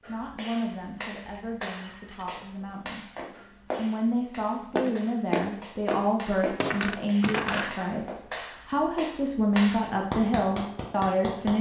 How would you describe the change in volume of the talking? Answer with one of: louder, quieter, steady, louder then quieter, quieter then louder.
louder.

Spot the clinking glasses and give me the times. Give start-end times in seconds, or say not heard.
1.2-2.4, 6.4-7.8.